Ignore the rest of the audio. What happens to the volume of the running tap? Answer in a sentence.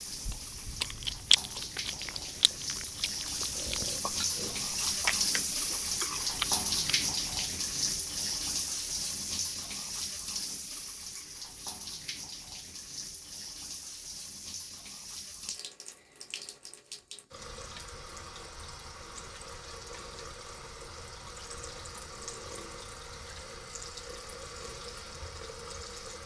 The loudness of the running tap goes down.